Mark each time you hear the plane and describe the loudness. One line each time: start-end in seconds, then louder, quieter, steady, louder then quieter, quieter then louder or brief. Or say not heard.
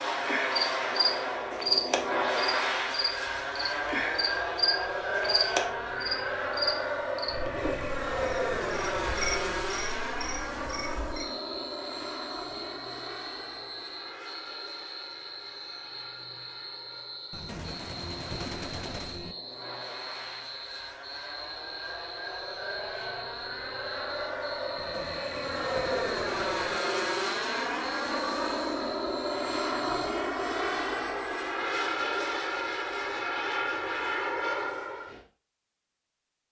0.0-35.2 quieter then louder.